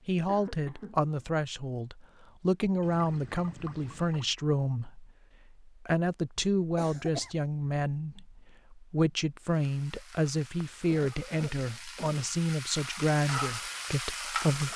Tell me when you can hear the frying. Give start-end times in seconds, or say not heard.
9.4-14.7.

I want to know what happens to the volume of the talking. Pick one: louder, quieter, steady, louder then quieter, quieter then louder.
steady.